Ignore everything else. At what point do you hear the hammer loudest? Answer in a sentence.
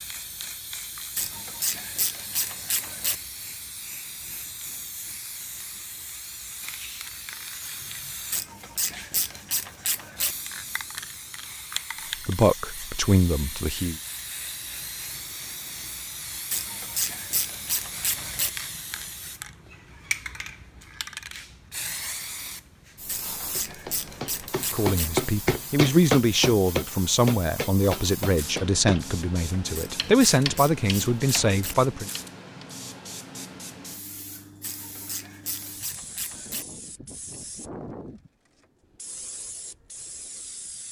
The loudest moment of the hammer is at 26 seconds.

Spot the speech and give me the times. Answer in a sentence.
You can hear the speech from 12.2 to 13.9 s and from 24.7 to 32.1 s.